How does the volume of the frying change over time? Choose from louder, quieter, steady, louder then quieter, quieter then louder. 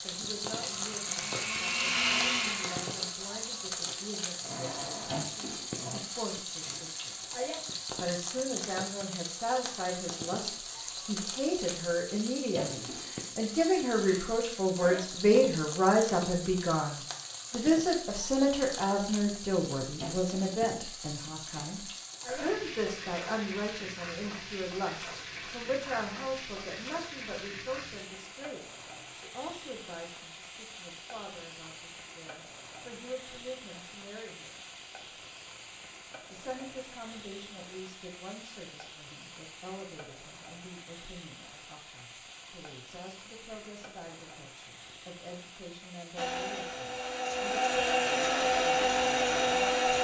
quieter.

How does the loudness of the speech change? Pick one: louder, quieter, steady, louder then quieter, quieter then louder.
louder then quieter.